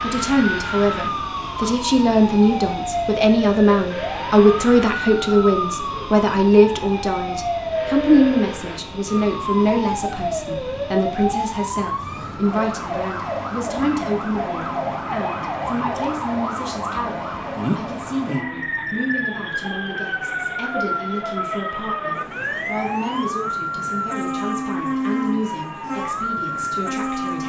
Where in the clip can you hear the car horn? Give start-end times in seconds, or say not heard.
not heard.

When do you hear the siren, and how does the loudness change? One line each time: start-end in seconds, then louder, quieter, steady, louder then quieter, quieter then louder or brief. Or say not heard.
0.0-27.4 steady.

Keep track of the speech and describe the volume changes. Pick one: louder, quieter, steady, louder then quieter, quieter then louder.
quieter.